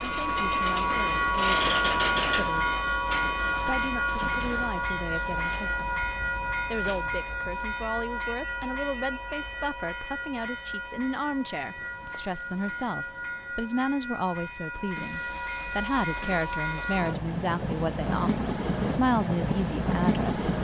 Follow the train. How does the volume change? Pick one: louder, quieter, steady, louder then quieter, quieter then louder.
quieter then louder.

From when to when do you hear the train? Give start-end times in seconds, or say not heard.
0.0-20.5.